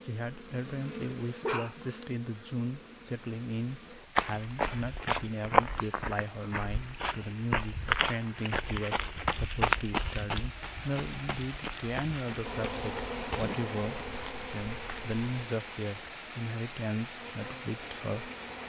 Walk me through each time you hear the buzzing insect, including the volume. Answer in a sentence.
You can hear the buzzing insect from 0.0 to 4.1 s, getting quieter; and from 12.4 to 18.6 s, getting quieter then louder.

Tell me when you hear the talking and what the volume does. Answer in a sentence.
The talking can be heard from 0.0 to 18.3 s, at a steady volume.